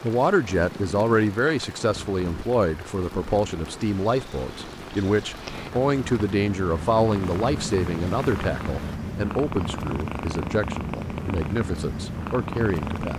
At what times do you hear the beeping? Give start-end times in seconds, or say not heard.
not heard.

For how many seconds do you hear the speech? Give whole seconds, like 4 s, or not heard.
13 s.